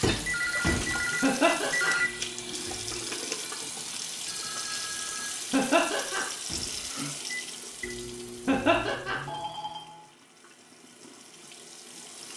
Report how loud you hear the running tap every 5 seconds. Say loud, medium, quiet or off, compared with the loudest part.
loud, loud, quiet.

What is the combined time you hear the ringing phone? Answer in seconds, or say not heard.
4 s.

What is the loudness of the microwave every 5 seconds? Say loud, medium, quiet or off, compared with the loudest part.
loud, medium, off.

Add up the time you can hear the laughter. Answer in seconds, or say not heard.
2 s.